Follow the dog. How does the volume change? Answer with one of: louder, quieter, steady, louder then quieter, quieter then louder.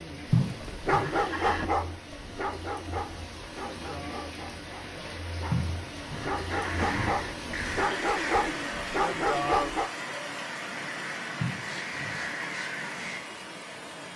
quieter then louder.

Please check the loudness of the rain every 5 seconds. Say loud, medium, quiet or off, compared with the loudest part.
medium, loud, loud.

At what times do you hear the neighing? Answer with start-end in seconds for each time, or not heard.
0.3-1.7, 5.5-7.2, 11.4-12.2.